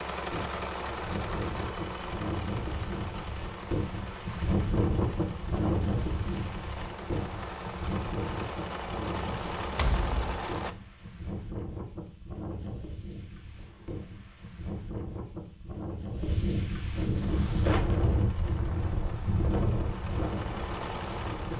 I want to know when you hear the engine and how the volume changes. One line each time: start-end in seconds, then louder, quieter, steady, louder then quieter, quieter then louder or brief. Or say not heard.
0.0-10.8 quieter then louder
17.2-21.5 louder.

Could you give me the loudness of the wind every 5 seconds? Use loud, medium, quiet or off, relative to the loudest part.
loud, loud, medium, loud, medium.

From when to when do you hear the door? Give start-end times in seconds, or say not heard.
9.8-10.5.